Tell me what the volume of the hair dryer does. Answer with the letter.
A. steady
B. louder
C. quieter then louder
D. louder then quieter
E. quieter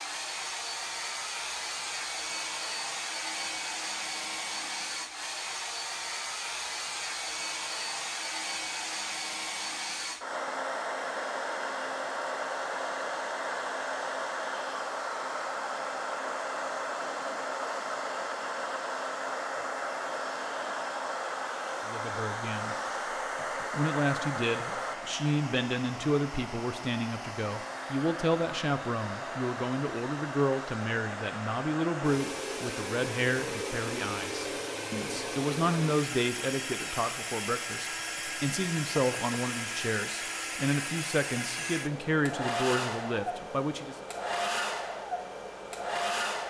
A.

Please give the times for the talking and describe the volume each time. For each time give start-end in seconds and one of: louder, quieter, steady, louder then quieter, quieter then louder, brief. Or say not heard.
21.9-22.8 brief
23.7-44.0 steady.